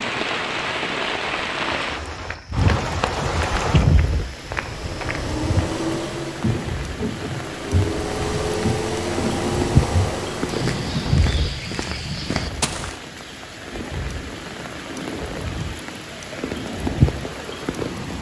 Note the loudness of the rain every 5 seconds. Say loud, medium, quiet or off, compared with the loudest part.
loud, loud, medium, loud.